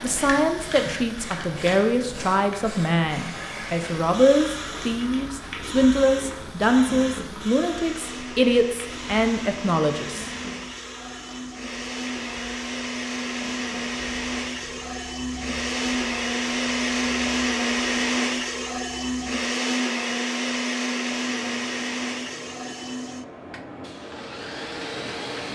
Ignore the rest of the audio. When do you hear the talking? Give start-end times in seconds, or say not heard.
0.0-10.3.